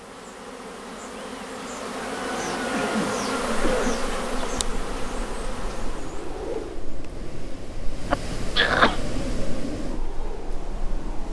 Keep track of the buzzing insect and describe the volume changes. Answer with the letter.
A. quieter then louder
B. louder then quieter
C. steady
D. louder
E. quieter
B.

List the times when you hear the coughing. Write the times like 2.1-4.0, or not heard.
2.7-4.0, 8.1-8.9.